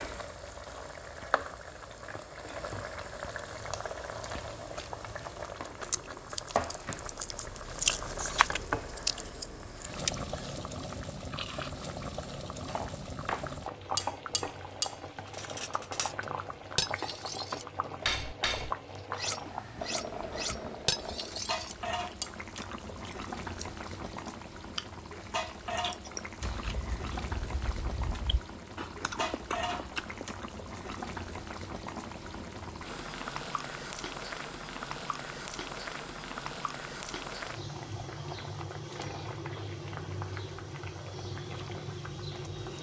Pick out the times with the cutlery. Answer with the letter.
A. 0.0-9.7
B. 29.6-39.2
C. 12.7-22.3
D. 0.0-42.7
C.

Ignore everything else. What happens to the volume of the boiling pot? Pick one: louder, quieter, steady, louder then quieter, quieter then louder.
steady.